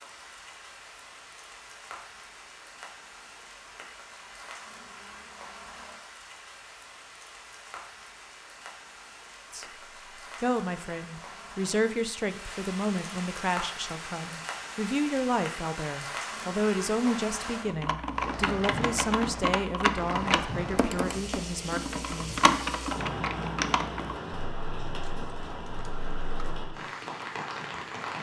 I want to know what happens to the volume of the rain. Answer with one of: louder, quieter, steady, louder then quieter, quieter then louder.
louder.